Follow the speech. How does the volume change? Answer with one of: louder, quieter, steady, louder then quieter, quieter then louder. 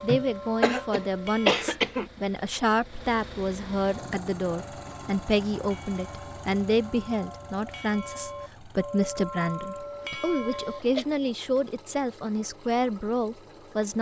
steady.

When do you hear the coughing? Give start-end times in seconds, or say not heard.
0.1-2.1, 9.8-11.1.